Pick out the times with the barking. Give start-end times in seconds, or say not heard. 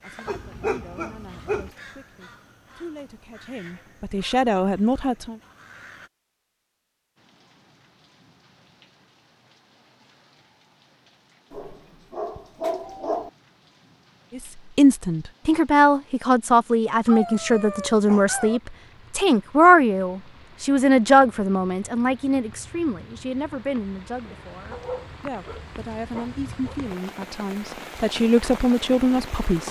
0.2-1.7, 11.5-13.3, 17.1-18.6, 24.7-26.8.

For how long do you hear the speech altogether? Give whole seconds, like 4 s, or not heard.
21 s.